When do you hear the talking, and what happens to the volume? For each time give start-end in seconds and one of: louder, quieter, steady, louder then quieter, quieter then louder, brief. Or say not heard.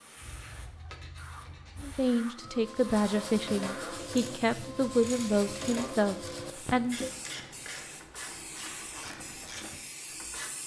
1.8-7.1 steady.